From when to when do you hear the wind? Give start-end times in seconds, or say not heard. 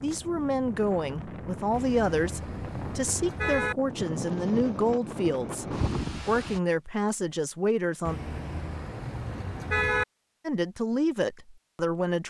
0.0-6.6.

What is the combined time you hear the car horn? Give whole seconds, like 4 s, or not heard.
4 s.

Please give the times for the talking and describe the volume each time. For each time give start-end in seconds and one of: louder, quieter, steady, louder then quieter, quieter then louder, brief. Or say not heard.
0.0-8.2 steady
10.4-12.2 brief.